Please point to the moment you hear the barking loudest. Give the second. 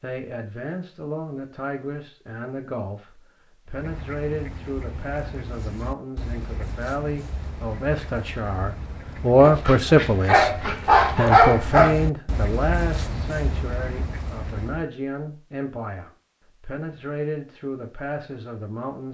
11 s.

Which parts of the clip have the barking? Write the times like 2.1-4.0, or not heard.
9.4-12.0.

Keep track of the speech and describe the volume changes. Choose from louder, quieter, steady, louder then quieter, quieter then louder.
louder then quieter.